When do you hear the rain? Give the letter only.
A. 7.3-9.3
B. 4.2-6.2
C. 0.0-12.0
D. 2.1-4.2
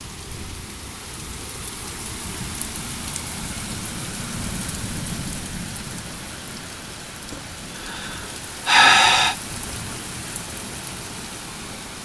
C.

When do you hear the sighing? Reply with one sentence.
You can hear the sighing from 7.3 to 9.3 s.